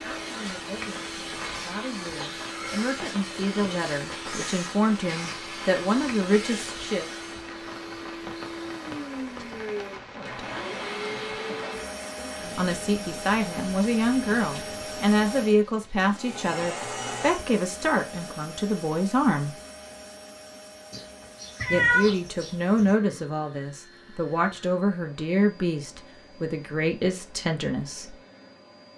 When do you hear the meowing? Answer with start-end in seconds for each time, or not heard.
20.9-22.9.